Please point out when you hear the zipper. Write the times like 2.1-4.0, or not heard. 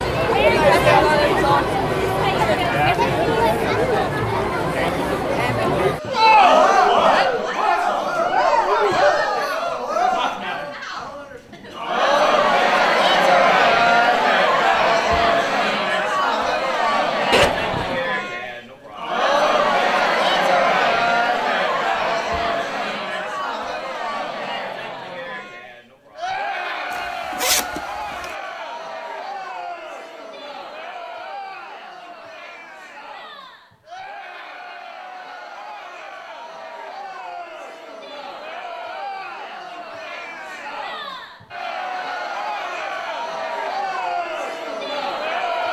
17.3-18.0, 26.9-28.3.